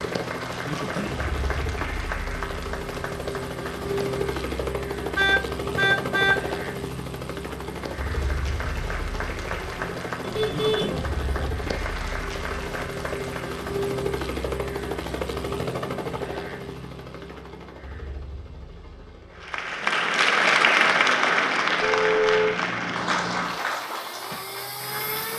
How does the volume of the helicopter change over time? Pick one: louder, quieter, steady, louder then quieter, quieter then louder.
quieter.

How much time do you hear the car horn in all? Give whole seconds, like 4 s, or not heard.
3 s.